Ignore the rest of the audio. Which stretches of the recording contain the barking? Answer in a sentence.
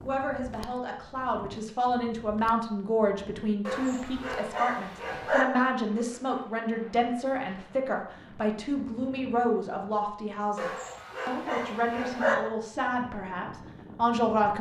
The barking can be heard from 3.6 to 5.5 s and from 10.6 to 12.3 s.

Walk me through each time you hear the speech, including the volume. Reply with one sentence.
You can hear the speech from 0.0 to 14.5 s, at a steady volume.